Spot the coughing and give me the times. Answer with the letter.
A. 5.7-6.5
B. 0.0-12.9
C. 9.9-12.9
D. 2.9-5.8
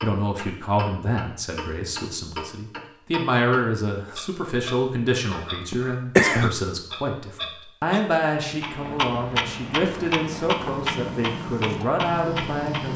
A.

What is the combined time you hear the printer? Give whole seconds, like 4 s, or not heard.
3 s.